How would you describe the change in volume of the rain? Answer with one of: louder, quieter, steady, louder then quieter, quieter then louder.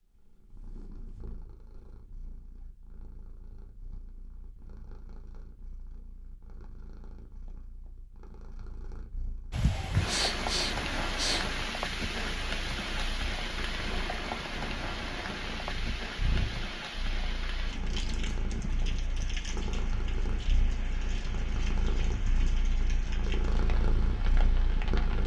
quieter.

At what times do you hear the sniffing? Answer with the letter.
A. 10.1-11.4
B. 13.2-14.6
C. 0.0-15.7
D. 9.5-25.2
A.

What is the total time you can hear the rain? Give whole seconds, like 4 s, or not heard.
16 s.